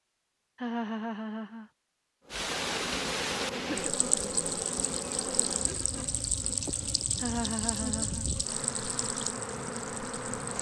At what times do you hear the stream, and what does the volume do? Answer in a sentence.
The stream can be heard from 2.3 to 10.5 s, getting quieter.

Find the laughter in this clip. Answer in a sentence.
The laughter can be heard from 0.6 to 1.7 s and from 7.2 to 8.2 s.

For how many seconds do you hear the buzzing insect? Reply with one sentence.
The buzzing insect can be heard for 8 seconds in total.